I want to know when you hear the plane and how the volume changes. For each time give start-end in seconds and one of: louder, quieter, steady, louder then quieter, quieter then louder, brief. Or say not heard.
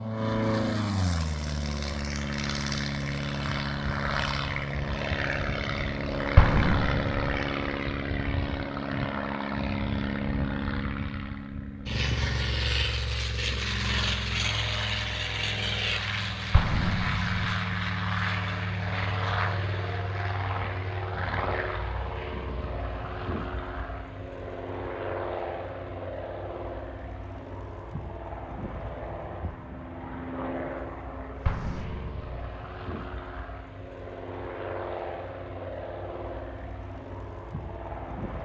0.0-38.4 quieter.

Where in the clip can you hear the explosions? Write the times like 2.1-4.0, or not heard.
6.3-7.4, 16.5-17.4, 31.4-32.5.